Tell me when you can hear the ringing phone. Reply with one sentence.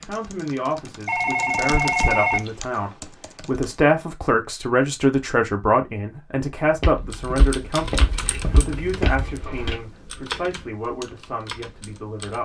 The ringing phone can be heard from 1.1 to 2.5 s.